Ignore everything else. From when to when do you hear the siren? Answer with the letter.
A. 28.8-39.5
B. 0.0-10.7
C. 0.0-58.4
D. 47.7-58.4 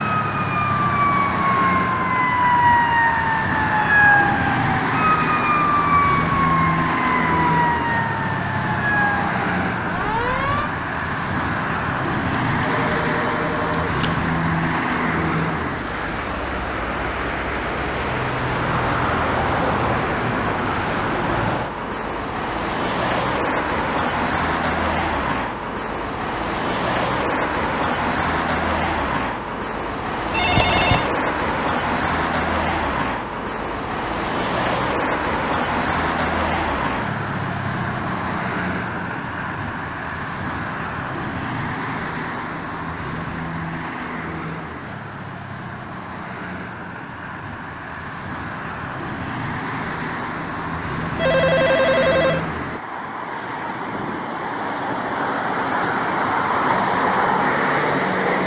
B.